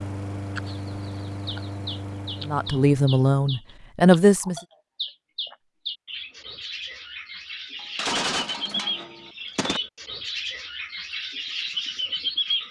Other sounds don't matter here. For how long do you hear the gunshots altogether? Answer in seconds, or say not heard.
2 s.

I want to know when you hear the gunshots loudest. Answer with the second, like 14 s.
8 s.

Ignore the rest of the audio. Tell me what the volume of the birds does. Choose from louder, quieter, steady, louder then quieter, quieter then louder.
louder.